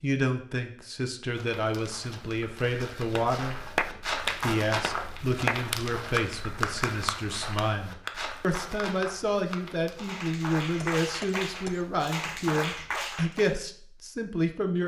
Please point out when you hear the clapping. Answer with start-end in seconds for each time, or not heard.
3.1-13.6.